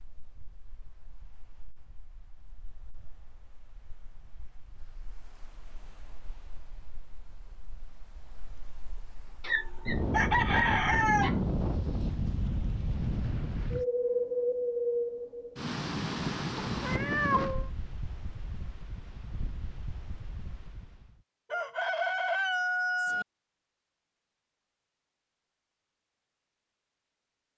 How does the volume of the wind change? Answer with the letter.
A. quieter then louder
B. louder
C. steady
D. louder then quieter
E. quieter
D.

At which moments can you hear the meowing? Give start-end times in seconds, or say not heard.
16.7-17.7.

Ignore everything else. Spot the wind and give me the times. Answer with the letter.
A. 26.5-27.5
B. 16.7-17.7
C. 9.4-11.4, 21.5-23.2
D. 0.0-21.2
D.